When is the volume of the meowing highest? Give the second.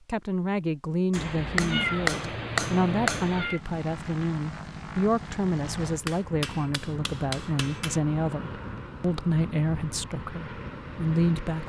2 s.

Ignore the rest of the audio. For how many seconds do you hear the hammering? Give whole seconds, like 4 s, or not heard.
4 s.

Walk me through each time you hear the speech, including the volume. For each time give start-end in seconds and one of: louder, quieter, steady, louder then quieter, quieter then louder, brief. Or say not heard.
0.1-11.6 steady.